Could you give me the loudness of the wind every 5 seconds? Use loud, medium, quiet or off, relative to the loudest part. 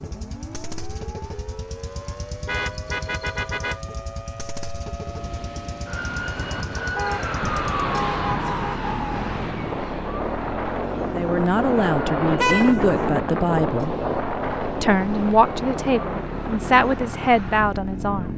off, medium, loud, medium.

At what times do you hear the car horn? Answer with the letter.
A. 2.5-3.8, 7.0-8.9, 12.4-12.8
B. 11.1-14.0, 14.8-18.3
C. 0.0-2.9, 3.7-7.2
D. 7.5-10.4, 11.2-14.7
A.